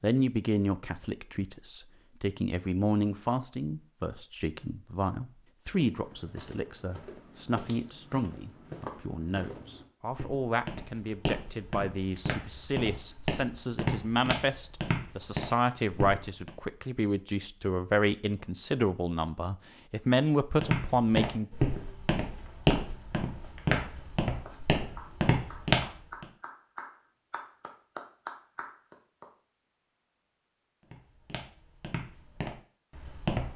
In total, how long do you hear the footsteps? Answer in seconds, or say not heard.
19 s.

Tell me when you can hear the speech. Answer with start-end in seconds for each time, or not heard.
0.0-21.4.